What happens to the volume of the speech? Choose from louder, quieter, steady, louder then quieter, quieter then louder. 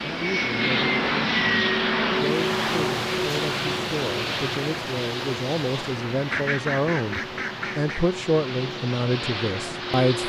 louder.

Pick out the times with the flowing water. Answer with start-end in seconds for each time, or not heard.
2.1-10.1.